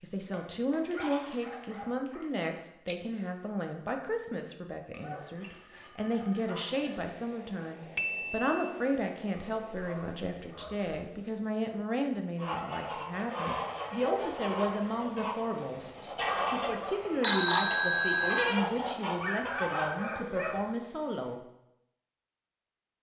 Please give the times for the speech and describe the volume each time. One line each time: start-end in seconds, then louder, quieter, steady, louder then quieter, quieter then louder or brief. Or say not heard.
0.0-21.4 steady.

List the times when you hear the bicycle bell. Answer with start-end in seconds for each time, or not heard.
2.9-3.5, 8.0-8.5, 17.2-18.4.